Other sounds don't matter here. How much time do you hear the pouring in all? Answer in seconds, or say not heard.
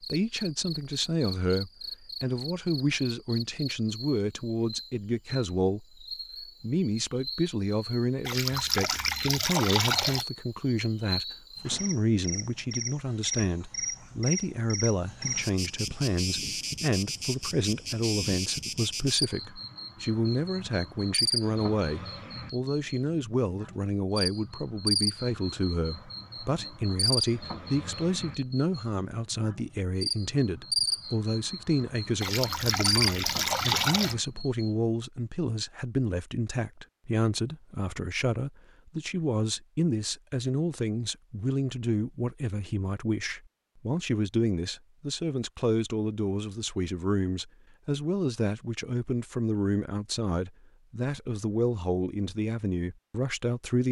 4 s.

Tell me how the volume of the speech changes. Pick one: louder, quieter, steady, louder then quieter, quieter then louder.
steady.